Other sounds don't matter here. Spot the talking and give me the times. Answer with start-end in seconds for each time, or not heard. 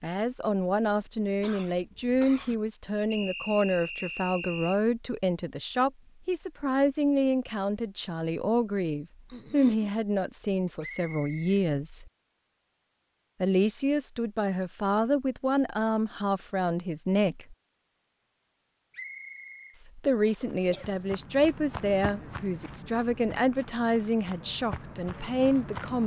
0.0-12.1, 13.4-17.6, 19.9-26.0.